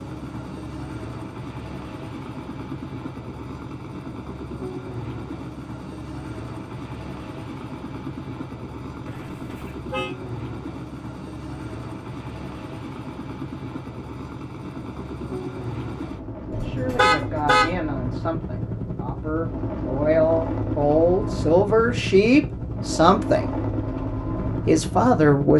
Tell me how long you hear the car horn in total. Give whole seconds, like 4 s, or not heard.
2 s.